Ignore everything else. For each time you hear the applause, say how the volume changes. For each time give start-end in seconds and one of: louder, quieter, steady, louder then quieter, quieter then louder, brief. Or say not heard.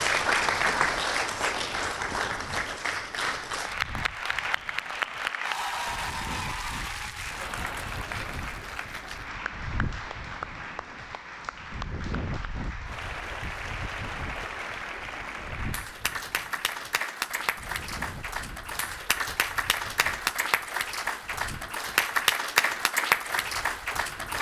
0.0-24.3 quieter then louder.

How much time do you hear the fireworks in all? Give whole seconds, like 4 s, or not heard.
not heard.